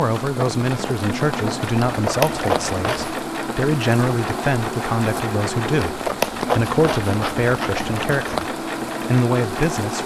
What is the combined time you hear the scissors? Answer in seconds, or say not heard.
4 s.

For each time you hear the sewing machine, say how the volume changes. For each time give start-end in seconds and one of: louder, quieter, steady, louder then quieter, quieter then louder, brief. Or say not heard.
0.0-10.0 steady.